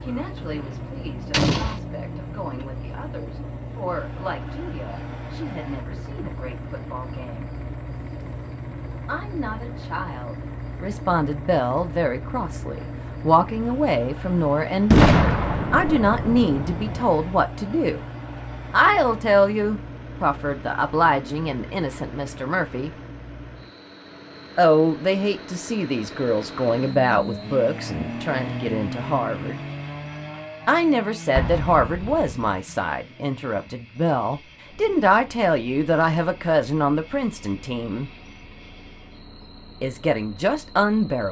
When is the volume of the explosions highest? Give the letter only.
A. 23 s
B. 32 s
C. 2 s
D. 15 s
D.